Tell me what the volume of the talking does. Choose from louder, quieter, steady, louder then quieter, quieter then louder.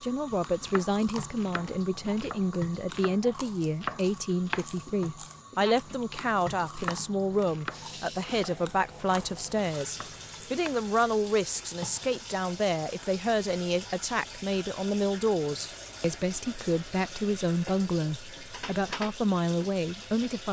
steady.